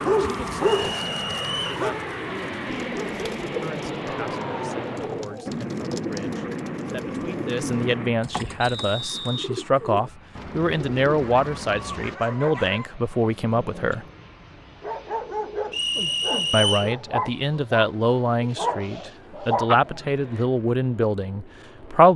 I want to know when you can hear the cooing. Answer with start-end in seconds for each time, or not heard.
2.6-12.2.